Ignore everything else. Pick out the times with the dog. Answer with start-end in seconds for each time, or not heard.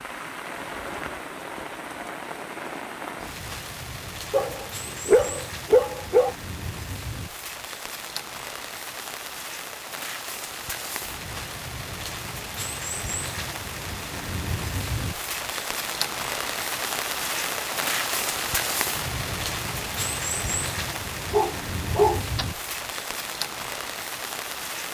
4.3-6.3, 21.3-22.4.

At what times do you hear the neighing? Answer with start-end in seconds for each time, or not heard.
not heard.